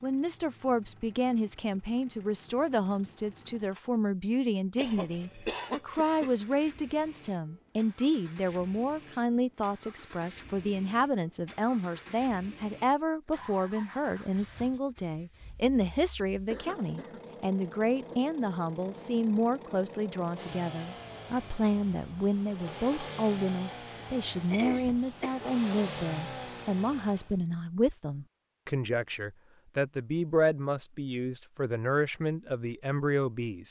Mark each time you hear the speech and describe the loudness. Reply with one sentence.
You can hear the speech from 0.0 to 33.6 s, at a steady volume.